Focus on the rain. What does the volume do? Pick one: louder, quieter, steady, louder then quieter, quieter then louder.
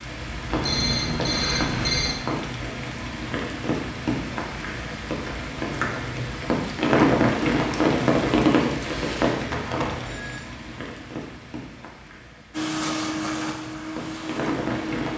louder then quieter.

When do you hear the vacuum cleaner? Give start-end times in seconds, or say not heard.
12.5-15.1.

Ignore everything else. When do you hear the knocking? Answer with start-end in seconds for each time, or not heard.
not heard.